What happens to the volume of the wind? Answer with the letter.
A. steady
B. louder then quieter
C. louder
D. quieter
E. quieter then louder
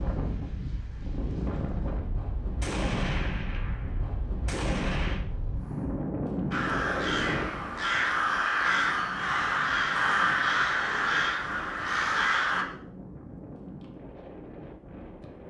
D.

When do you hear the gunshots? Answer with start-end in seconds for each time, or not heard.
2.6-5.2.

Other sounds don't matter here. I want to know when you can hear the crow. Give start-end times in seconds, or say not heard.
6.5-12.7.